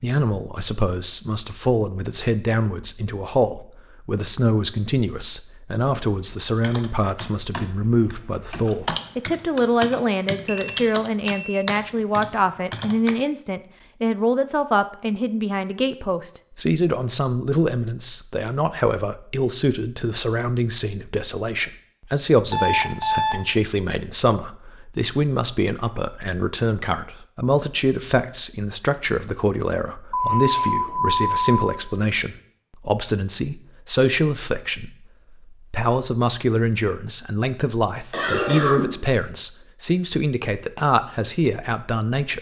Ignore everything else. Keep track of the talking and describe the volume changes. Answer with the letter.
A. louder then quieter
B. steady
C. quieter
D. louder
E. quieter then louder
B.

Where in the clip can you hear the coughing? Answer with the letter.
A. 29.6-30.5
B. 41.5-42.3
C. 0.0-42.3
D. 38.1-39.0
D.